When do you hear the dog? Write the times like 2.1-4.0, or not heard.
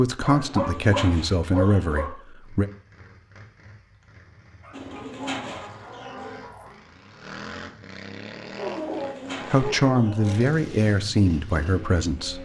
0.2-2.1, 4.6-6.8, 8.6-10.4.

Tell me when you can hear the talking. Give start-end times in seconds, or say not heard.
0.0-2.7, 9.5-12.3.